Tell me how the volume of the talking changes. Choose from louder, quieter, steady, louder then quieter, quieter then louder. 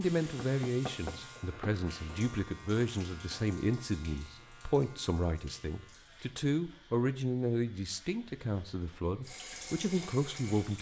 steady.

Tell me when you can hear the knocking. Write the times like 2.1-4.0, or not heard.
0.2-1.8.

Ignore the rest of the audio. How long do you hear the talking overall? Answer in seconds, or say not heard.
11 s.